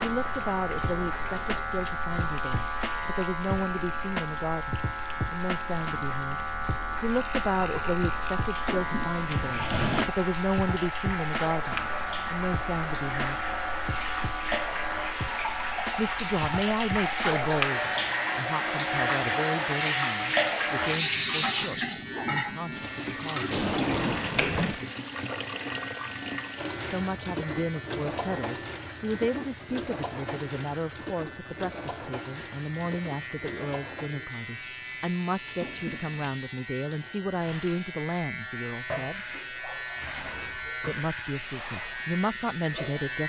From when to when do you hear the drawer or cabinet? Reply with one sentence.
You can hear the drawer or cabinet from 8.6 to 10.1 s, from 23.5 to 24.9 s and from 35.5 to 36.4 s.